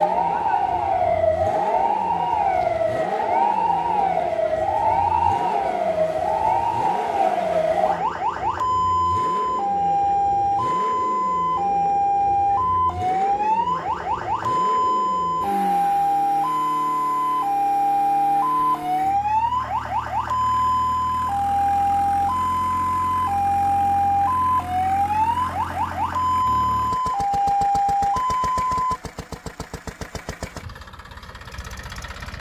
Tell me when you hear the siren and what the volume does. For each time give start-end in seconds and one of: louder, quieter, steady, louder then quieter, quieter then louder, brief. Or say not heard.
0.0-29.0 steady.